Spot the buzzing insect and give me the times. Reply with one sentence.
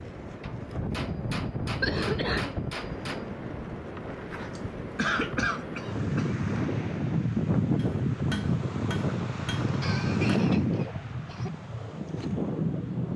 The buzzing insect can't be heard in this clip.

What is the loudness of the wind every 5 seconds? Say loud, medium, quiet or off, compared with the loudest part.
medium, loud, loud.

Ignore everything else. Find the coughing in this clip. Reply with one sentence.
You can hear the coughing from 1.8 to 2.5 s, from 4.5 to 6.3 s and from 9.8 to 11.5 s.